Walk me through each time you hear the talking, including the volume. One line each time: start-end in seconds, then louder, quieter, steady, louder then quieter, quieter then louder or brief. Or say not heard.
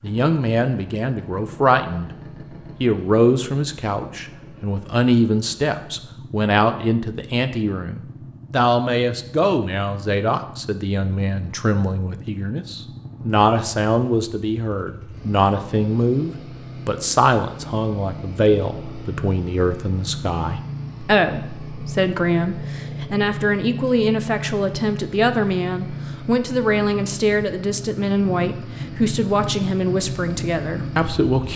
0.0-2.1 brief
2.8-31.5 steady.